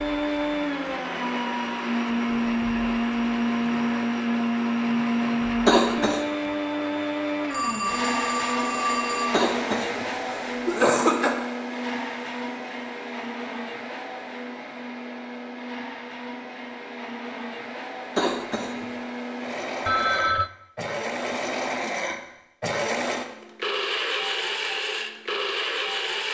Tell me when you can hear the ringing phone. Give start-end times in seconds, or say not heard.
7.5-9.4, 19.9-20.5.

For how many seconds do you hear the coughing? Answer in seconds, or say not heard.
3 s.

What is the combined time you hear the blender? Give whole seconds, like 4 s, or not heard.
26 s.